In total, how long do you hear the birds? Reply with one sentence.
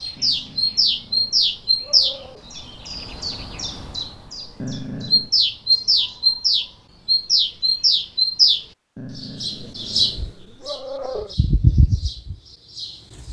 The birds can be heard for 13 seconds in total.